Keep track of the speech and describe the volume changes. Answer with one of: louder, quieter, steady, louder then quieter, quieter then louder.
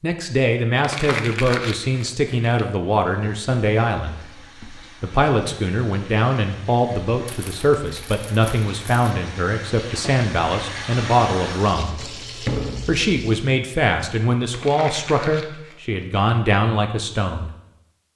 steady.